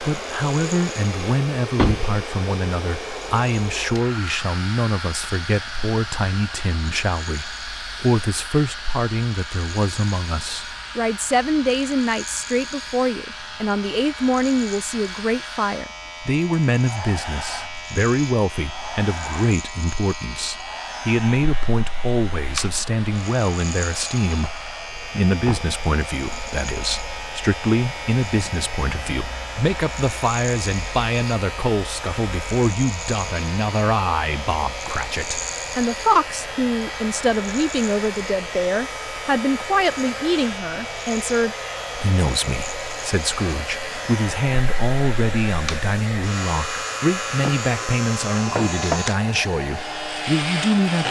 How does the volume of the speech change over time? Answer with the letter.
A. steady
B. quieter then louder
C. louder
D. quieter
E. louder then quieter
A.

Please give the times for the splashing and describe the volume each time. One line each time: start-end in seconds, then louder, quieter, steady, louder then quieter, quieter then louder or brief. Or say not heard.
not heard.